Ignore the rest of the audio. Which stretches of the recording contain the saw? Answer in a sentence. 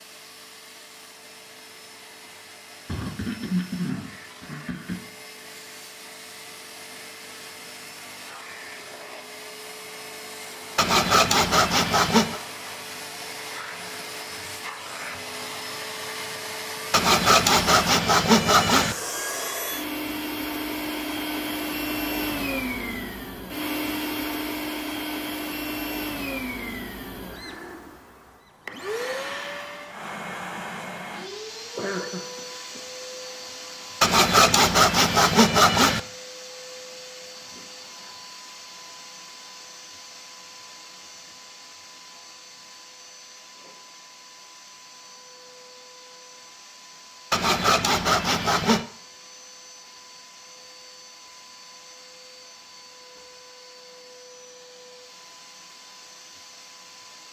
You can hear the saw from 10.8 to 12.4 s, from 16.9 to 18.9 s, from 34.0 to 36.0 s and from 47.3 to 48.9 s.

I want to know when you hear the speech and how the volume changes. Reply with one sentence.
The speech can't be heard in this clip.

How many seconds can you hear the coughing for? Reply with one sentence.
The coughing can be heard for 4 seconds in total.